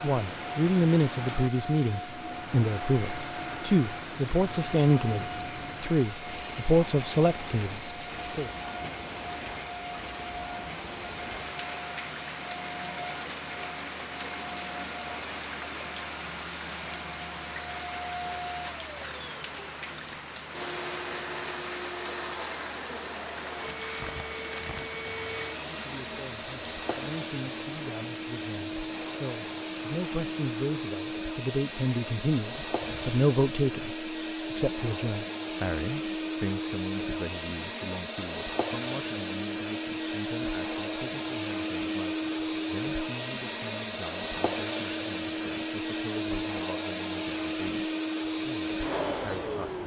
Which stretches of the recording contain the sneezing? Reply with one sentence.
The sneezing can't be heard in this clip.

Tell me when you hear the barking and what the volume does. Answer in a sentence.
The barking can't be heard in this clip.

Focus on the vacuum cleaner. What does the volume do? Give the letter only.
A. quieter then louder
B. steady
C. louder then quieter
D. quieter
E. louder
E.